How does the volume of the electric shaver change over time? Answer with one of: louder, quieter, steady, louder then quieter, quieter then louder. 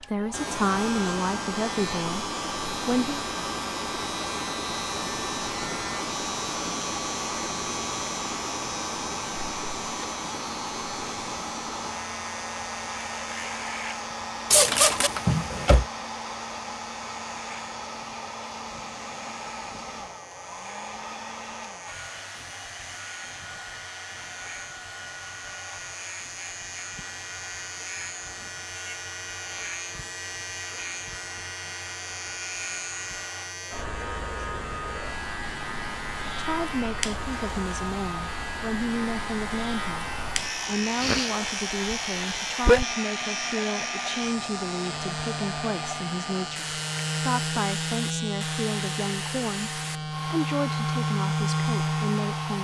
quieter then louder.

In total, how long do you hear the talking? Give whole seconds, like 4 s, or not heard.
19 s.